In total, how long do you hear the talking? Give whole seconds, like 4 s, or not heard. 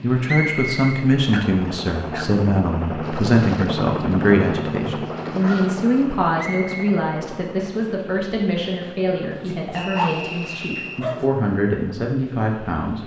13 s.